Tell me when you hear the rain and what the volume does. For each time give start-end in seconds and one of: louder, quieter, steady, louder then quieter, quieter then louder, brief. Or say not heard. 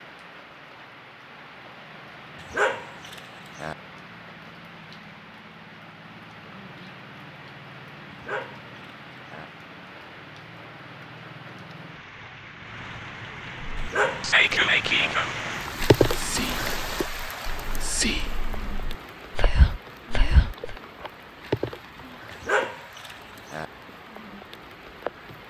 0.0-25.4 louder then quieter.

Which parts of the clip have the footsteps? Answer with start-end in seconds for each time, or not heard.
not heard.